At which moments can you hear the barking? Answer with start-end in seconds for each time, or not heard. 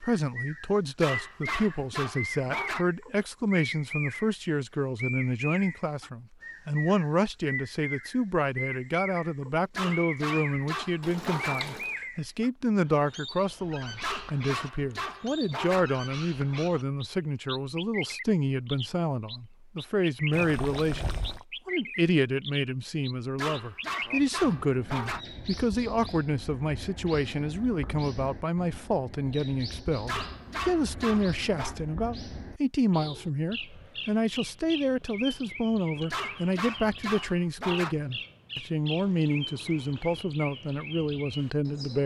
1.0-2.9, 9.7-11.6, 14.0-15.8, 23.4-25.2, 30.1-31.8, 36.1-38.0.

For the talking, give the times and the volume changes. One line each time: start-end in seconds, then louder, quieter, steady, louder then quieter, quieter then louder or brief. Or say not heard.
0.0-42.0 steady.